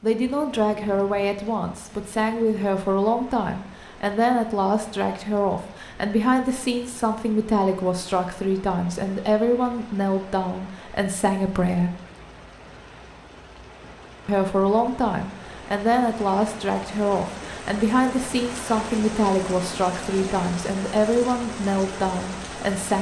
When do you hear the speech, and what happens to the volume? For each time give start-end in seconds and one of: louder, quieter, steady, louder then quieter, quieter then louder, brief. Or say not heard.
0.0-11.9 steady
14.2-22.9 steady.